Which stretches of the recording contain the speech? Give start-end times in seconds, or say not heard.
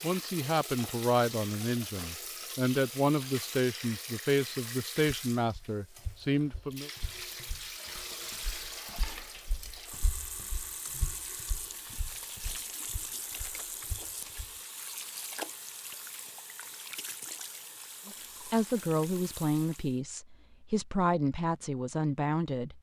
0.0-6.9, 18.1-22.7.